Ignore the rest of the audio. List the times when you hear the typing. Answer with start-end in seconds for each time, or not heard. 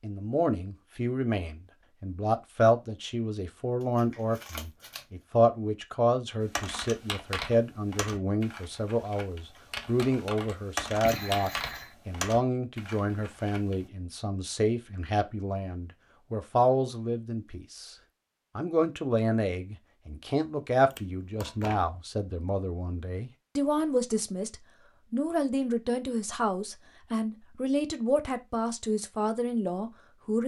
6.4-13.9.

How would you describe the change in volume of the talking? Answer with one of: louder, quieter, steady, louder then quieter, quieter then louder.
steady.